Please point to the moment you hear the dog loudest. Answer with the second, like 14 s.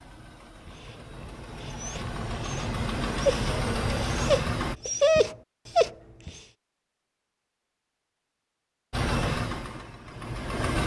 5 s.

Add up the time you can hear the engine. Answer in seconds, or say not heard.
7 s.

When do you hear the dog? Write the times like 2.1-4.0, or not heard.
0.7-6.4.